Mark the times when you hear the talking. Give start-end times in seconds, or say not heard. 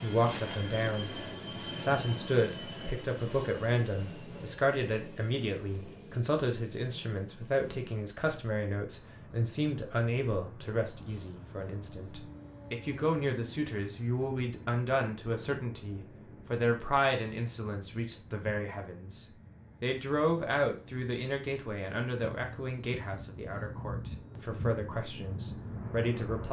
0.0-1.2, 1.8-26.4.